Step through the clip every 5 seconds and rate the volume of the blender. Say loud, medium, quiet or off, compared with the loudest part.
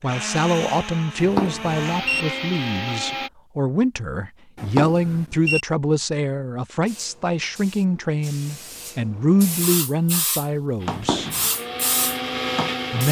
loud, off, loud.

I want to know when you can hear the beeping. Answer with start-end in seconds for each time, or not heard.
1.1-2.2, 4.5-5.7, 10.9-11.5.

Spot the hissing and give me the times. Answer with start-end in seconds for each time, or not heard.
6.8-13.0.